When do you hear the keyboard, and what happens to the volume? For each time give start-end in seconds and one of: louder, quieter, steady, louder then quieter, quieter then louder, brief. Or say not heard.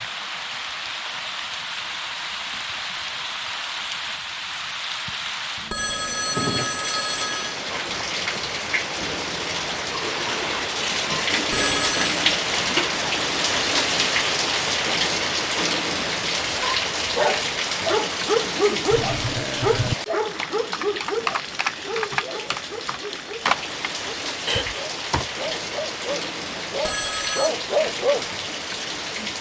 18.9-25.3 steady.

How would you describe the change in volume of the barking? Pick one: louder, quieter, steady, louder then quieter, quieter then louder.
quieter then louder.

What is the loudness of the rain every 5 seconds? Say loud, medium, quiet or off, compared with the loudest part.
medium, medium, loud, loud, medium, medium.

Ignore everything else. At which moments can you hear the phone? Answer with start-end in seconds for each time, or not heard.
5.7-7.5, 11.5-12.2, 26.8-27.5.